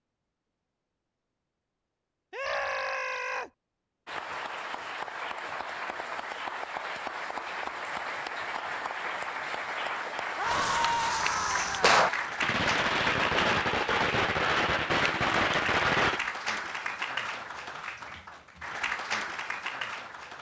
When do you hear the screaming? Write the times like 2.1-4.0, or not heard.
2.3-3.5, 10.3-12.0.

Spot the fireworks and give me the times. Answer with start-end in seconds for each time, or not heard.
10.4-16.2.